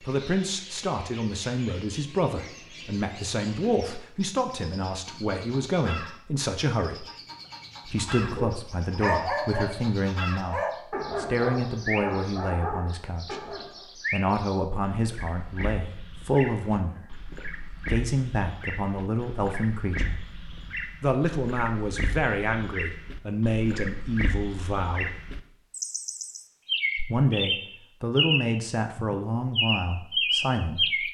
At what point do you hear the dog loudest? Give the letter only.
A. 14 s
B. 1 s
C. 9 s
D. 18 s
C.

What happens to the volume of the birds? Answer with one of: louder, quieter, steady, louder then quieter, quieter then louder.
louder.